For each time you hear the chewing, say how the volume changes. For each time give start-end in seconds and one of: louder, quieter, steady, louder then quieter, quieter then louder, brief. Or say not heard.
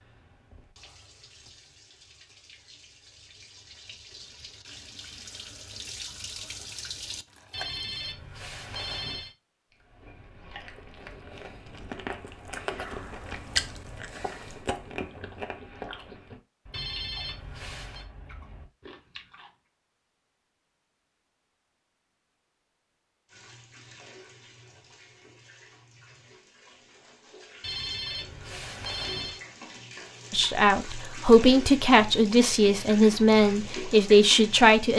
9.7-19.5 louder then quieter.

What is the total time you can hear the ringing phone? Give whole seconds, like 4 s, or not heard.
5 s.